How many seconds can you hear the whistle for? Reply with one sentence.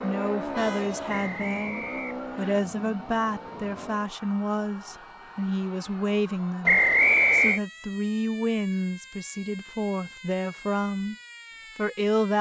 The whistle can be heard for 2 seconds in total.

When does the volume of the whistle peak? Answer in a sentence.
The volume of the whistle peaks at 7 seconds.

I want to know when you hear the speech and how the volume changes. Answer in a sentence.
The speech can be heard from 0.0 to 11.2 s, at a steady volume; and briefly from 11.8 to 12.3 s.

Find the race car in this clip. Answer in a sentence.
You can hear the race car from 0.0 to 4.2 s.